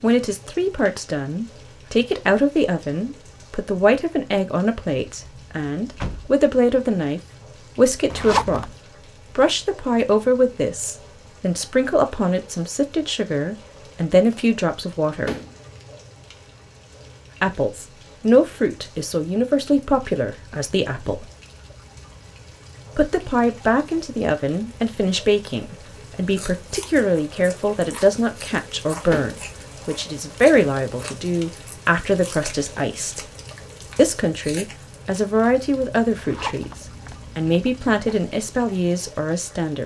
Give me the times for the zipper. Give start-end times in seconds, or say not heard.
8.1-8.8, 36.1-38.0.